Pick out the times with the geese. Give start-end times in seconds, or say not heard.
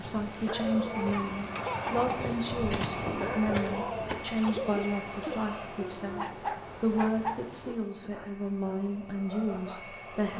2.5-4.5.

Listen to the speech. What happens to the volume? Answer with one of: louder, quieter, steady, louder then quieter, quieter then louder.
steady.